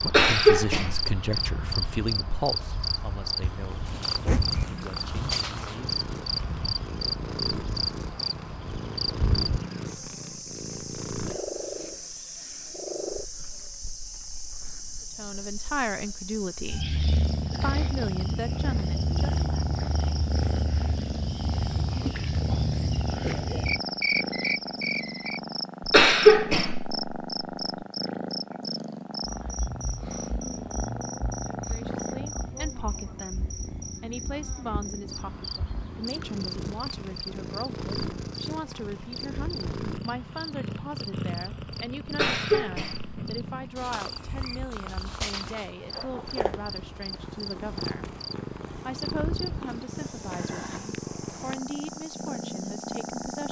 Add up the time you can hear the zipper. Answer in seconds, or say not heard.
2 s.